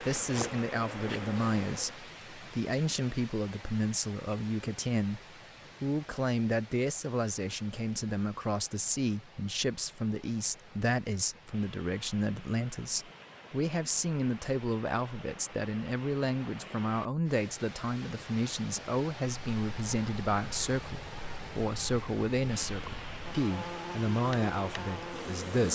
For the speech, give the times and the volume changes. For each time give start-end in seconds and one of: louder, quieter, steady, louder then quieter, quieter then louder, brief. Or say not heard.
0.0-25.6 steady.